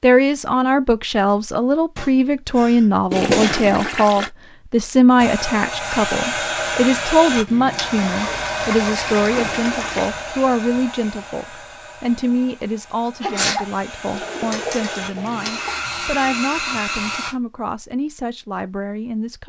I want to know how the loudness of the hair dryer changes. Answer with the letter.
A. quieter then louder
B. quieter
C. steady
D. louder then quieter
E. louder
A.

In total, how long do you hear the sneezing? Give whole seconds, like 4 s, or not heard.
2 s.